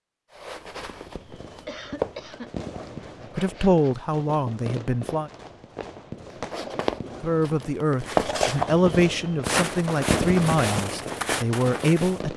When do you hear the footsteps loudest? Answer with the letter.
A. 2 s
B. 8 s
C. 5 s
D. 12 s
B.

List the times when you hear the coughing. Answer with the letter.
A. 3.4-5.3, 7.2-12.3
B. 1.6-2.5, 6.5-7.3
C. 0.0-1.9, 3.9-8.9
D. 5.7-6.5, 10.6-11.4
B.